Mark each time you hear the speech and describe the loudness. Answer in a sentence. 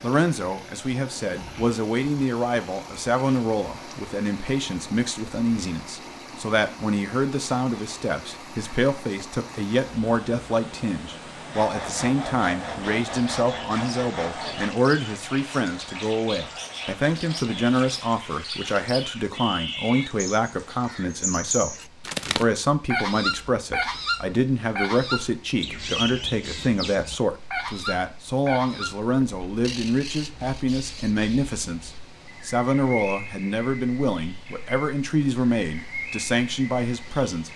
The speech can be heard from 0.0 to 21.8 s, at a steady volume; and from 22.4 to 37.5 s, at a steady volume.